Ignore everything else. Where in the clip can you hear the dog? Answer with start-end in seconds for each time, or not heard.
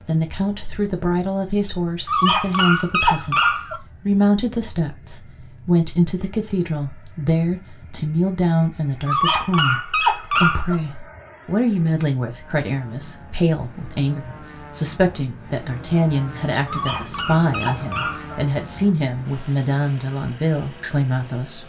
2.0-3.8, 9.1-10.8, 16.6-18.4.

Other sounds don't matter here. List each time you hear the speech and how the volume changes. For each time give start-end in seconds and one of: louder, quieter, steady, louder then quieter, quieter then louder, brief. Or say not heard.
0.1-21.6 steady.